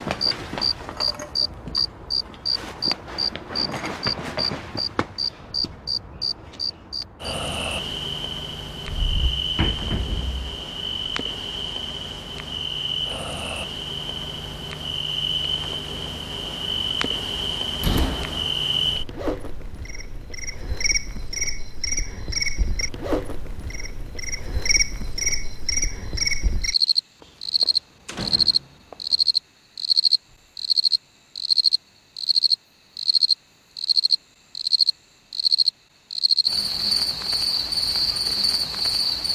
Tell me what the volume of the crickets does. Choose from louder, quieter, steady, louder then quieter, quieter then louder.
louder.